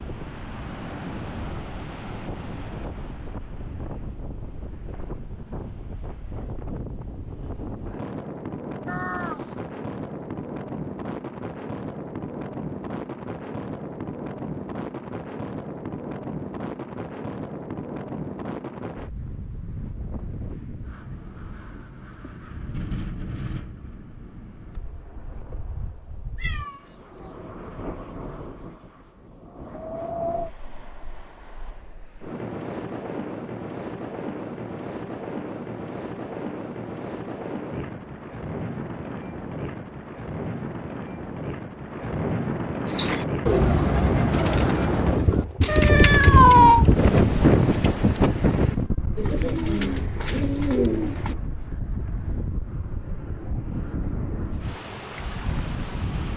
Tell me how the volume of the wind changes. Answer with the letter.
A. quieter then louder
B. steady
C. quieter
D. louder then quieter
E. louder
E.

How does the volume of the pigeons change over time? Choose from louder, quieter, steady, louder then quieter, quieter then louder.
quieter then louder.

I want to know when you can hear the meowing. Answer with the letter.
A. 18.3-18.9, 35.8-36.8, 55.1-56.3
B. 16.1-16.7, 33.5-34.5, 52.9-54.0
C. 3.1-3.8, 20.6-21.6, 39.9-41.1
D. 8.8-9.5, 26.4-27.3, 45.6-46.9
D.